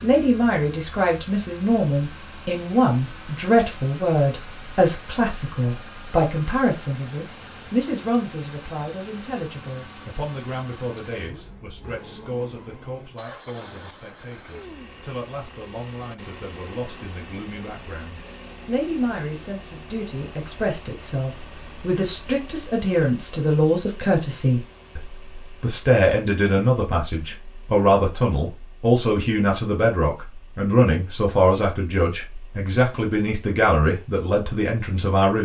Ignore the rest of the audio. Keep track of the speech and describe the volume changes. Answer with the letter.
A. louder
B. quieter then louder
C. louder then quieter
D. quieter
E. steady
B.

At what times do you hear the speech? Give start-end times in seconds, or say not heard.
0.0-35.3.